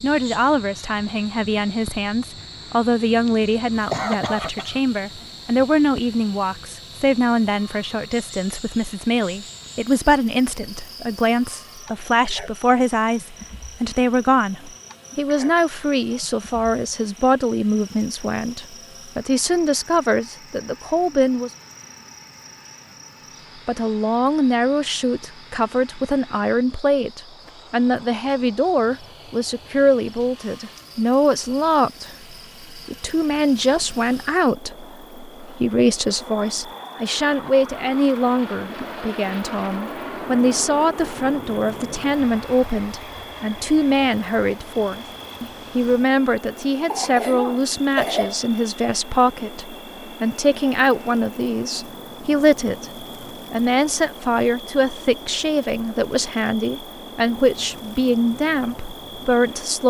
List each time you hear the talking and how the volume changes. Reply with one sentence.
You can hear the talking from 0.0 to 21.5 s, at a steady volume; and from 23.6 to 59.8 s, at a steady volume.